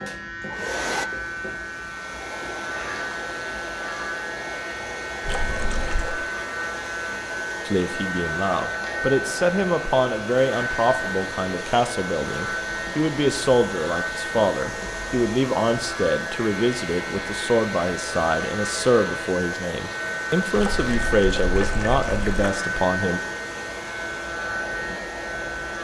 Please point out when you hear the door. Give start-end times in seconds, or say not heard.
not heard.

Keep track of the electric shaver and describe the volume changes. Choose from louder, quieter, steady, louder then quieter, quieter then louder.
steady.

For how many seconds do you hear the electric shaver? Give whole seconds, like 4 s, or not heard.
26 s.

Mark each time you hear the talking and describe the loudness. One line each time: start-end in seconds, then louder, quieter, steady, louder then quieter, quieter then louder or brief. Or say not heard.
7.7-23.2 steady.